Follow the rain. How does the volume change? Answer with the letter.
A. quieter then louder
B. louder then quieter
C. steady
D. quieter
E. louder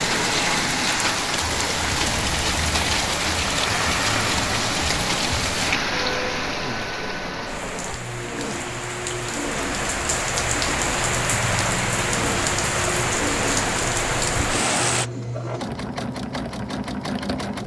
A.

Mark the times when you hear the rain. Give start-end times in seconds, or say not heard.
0.0-15.1.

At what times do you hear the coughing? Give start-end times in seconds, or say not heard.
not heard.